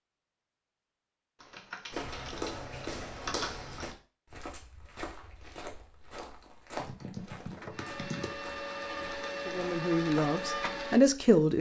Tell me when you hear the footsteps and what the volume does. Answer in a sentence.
You can hear the footsteps from 1.9 to 10.3 s, getting quieter.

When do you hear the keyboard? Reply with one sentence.
The keyboard can be heard from 1.4 to 4.0 s and from 6.8 to 8.3 s.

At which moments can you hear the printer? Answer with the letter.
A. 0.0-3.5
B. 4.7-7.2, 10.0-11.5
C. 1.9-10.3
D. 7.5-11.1
D.